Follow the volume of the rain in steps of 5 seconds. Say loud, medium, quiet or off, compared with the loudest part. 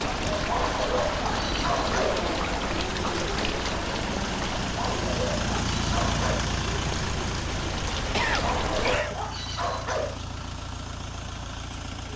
loud, loud, off.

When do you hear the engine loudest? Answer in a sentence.
The loudest moment of the engine is at 6 seconds.